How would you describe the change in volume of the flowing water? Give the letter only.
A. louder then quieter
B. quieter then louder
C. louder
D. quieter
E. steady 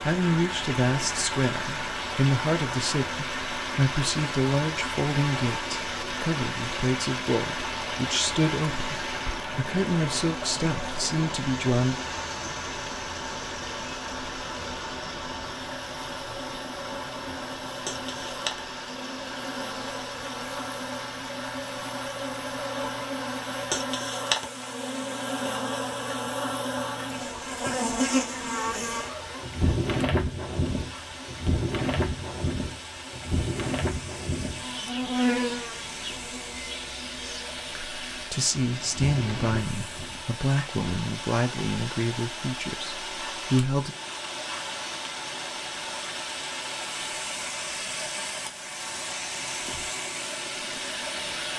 B.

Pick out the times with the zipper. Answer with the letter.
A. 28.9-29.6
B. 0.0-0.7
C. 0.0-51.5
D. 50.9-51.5
A.